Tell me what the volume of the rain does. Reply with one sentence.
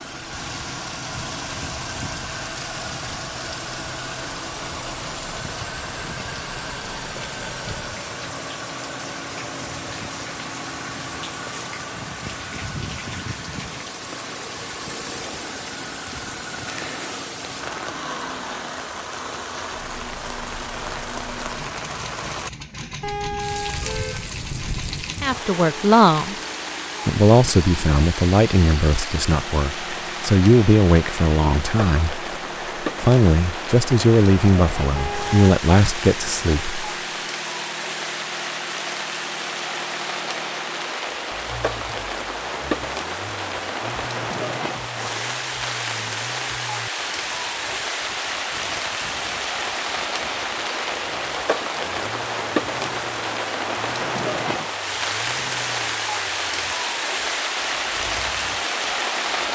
The volume of the rain goes up.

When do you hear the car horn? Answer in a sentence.
The car horn can be heard from 23.0 to 25.1 s and from 35.0 to 35.5 s.